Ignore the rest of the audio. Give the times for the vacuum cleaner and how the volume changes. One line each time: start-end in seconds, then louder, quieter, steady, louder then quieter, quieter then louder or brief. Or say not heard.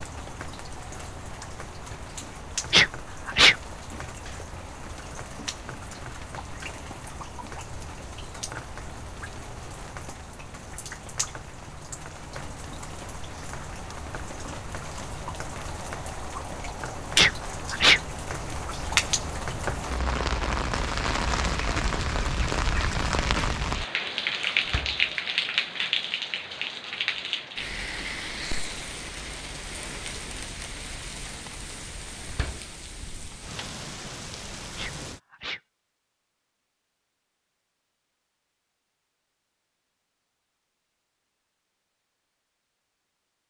not heard.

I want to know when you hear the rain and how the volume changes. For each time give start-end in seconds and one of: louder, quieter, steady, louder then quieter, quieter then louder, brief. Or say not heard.
0.0-35.2 louder then quieter.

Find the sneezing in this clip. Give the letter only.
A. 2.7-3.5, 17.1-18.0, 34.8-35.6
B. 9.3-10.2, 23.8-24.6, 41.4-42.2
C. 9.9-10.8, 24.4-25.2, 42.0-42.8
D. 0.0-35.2
A.